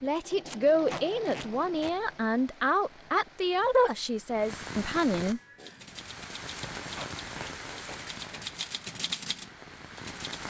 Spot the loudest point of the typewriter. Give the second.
9 s.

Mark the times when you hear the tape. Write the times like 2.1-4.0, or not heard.
0.5-1.9, 6.5-8.0.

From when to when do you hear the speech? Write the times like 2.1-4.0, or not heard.
0.0-5.4.